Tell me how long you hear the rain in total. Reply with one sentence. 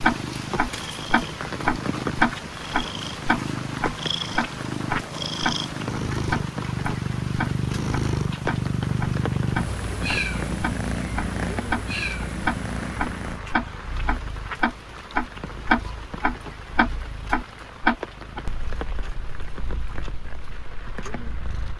You can hear the rain for 22 seconds altogether.